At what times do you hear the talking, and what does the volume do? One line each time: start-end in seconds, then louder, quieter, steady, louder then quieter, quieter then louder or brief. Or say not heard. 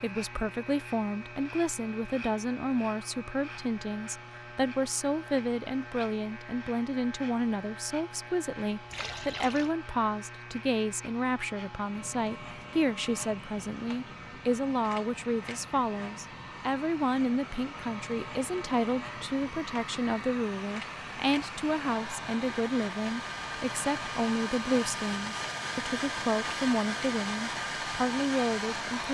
0.0-29.0 steady.